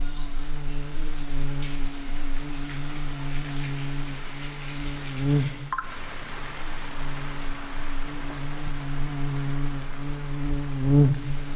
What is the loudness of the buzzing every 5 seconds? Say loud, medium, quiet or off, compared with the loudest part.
quiet, medium, loud.